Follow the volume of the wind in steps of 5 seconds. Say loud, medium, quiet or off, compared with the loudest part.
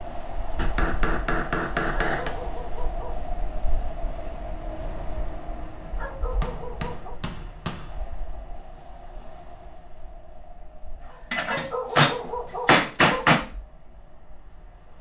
loud, medium, quiet.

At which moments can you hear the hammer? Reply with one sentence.
You can hear the hammer from 0.6 to 2.4 s, from 6.3 to 8.0 s and from 11.3 to 13.4 s.